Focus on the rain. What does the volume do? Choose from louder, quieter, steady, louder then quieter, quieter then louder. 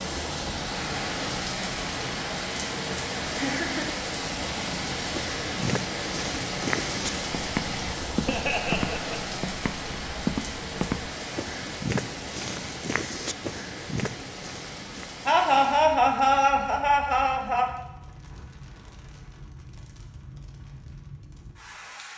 quieter.